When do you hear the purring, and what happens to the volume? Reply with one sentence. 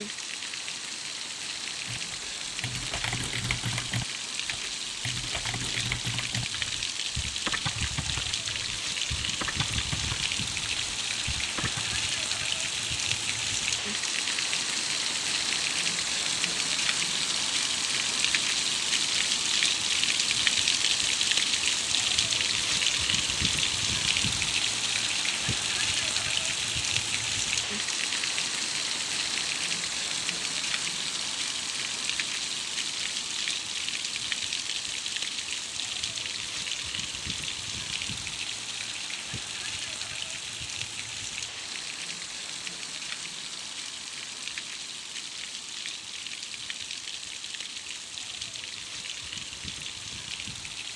You can't hear the purring here.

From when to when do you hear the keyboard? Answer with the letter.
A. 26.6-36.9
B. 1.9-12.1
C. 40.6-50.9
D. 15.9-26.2
B.